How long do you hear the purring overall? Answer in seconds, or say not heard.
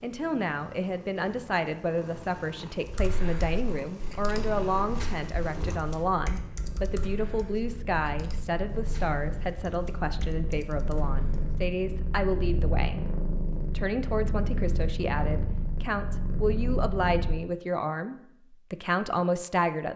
17 s.